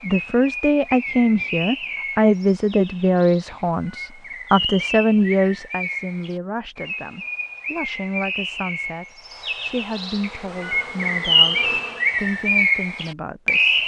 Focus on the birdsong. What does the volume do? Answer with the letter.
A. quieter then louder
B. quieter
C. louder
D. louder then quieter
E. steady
C.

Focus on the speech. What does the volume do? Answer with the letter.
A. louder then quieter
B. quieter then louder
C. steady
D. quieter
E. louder
D.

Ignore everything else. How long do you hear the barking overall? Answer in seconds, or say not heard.
not heard.